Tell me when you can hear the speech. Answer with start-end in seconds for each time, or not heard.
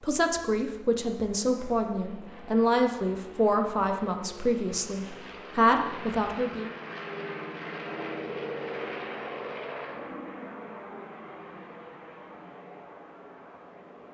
0.0-6.8.